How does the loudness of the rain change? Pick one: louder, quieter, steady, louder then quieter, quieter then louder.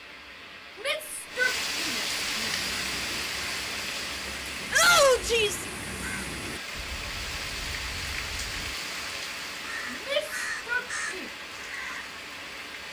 quieter.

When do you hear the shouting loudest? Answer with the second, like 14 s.
5 s.